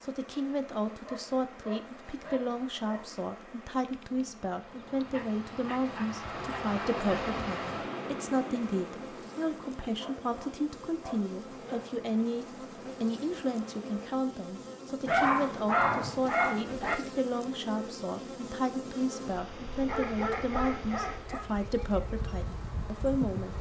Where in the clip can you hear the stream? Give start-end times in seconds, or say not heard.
0.0-14.1.